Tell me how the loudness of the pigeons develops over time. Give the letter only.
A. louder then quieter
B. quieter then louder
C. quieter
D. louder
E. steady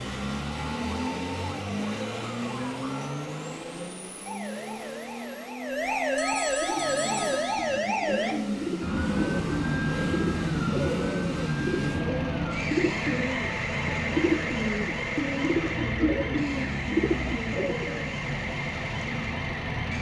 D.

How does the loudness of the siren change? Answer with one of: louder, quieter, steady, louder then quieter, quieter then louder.
louder then quieter.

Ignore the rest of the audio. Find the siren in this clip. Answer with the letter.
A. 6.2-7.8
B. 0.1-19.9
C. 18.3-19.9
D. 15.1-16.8
B.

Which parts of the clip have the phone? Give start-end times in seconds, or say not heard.
6.2-7.8.